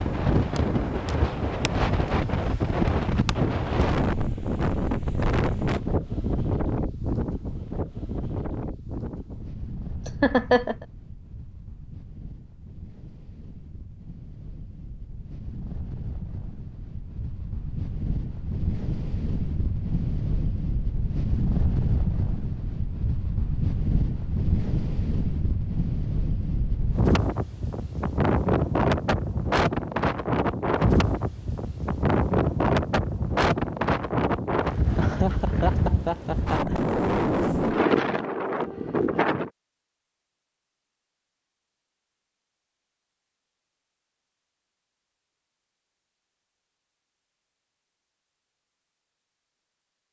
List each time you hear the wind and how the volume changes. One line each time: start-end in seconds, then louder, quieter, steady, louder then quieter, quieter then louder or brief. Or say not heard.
0.0-39.5 quieter then louder.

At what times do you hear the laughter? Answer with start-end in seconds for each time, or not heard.
10.1-10.8, 35.0-36.8.